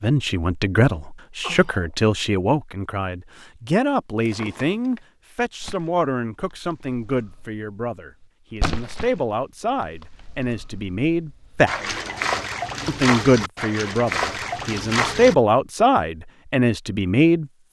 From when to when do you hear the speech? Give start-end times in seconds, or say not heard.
0.0-11.8, 12.8-17.4.